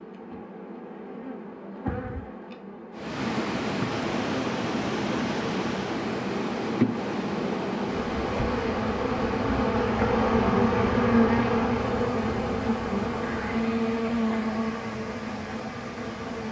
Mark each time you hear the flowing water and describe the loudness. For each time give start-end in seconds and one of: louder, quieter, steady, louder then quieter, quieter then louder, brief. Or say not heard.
2.9-16.4 quieter.